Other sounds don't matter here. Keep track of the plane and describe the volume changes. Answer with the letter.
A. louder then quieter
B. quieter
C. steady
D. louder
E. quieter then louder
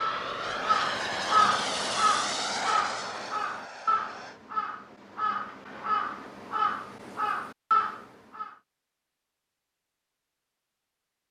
B.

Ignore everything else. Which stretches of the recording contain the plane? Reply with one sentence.
The plane can be heard from 0.0 to 4.4 s.